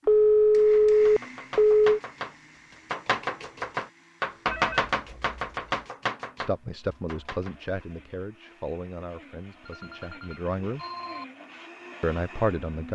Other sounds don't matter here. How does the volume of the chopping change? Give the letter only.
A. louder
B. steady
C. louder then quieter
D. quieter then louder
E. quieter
C.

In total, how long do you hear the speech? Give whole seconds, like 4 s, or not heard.
5 s.